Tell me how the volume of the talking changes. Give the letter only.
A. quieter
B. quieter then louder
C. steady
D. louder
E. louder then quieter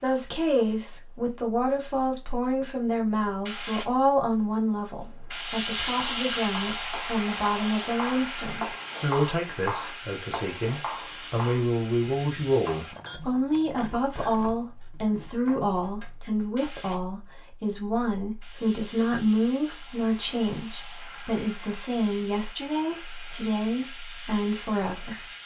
C.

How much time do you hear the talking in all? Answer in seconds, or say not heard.
25 s.